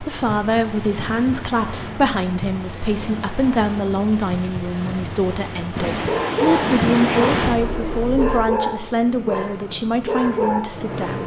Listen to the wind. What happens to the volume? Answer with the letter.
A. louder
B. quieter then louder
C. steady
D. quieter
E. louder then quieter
A.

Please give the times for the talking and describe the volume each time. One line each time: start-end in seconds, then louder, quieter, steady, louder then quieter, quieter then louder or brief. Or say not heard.
0.0-11.2 steady.